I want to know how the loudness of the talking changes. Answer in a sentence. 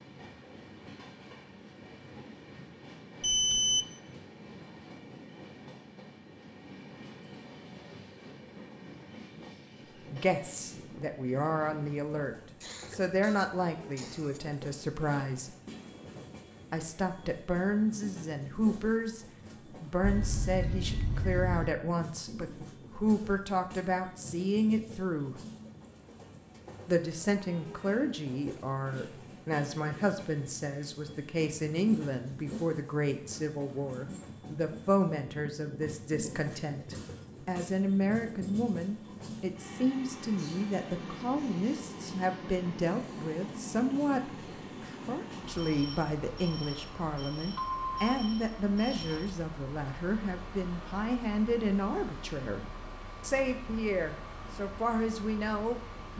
The loudness of the talking stays about the same.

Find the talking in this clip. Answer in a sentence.
The talking can be heard from 10.1 to 15.6 s, from 16.7 to 25.4 s and from 26.9 to 56.1 s.